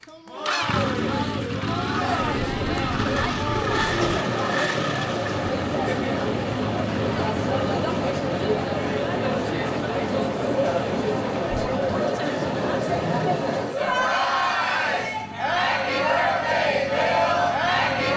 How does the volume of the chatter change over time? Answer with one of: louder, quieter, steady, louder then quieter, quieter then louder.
louder.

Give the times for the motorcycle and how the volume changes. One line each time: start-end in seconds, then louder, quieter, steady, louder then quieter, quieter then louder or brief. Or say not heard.
0.0-18.1 quieter.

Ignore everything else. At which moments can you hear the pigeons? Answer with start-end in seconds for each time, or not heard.
2.1-4.2.